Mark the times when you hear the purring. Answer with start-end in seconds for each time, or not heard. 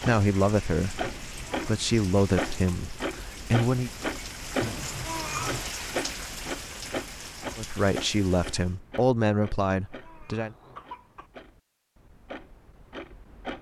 not heard.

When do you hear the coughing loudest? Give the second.
5 s.